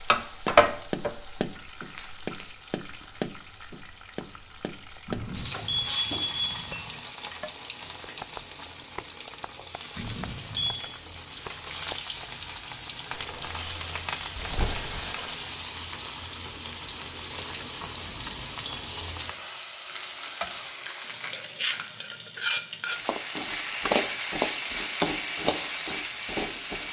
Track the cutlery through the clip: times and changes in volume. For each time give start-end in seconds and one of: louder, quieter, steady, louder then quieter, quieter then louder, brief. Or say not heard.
not heard.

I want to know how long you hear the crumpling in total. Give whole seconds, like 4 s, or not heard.
5 s.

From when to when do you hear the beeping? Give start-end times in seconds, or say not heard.
5.0-6.9, 9.9-10.8, 18.1-18.6.